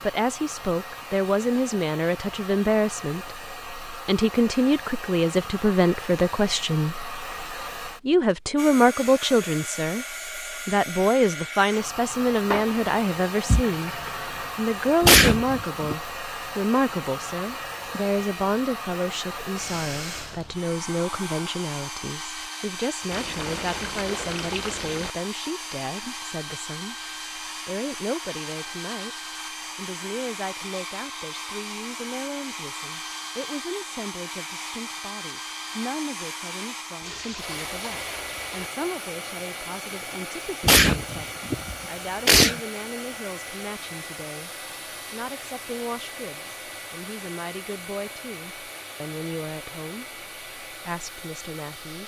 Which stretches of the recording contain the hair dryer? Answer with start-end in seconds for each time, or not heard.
0.0-52.0.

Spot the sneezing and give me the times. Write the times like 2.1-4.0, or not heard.
15.0-15.9, 40.6-42.6.